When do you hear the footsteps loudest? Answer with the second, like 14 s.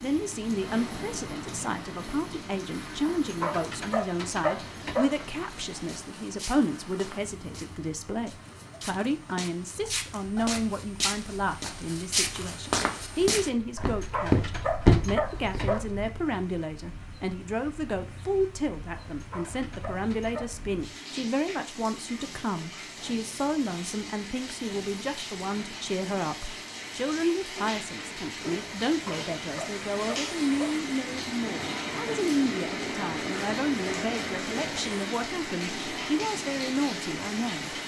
15 s.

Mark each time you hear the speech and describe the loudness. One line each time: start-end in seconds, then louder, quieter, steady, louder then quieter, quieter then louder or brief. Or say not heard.
0.0-37.8 steady.